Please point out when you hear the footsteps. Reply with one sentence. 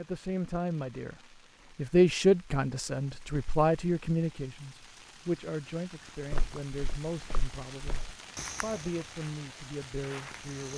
The footsteps can be heard from 6.3 to 10.7 s.